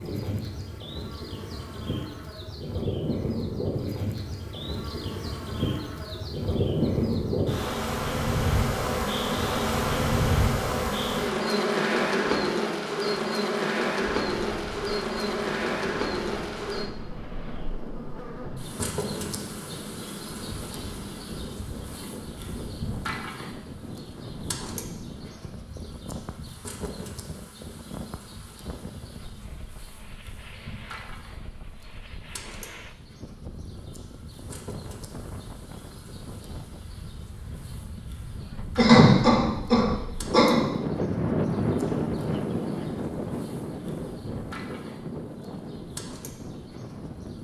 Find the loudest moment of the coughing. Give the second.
39 s.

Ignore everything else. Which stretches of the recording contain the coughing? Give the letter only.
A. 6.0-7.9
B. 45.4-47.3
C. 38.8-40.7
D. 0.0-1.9
C.